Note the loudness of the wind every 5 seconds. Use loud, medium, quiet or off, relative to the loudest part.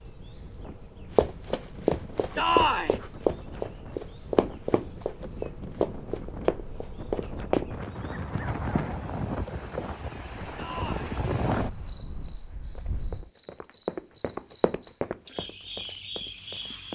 quiet, loud, loud, off.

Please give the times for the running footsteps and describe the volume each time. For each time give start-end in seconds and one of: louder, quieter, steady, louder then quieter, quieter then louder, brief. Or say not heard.
1.1-8.9 steady
12.8-16.9 louder then quieter.